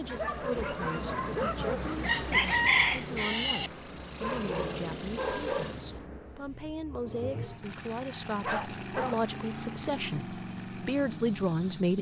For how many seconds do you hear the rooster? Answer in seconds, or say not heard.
2 s.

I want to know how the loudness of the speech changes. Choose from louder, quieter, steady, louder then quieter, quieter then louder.
louder.